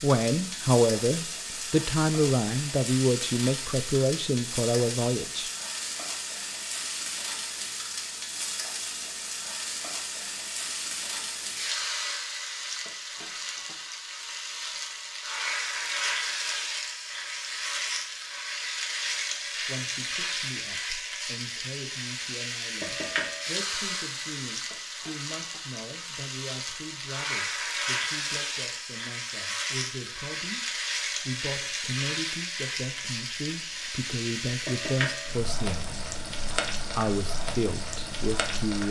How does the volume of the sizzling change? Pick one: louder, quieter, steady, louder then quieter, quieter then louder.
steady.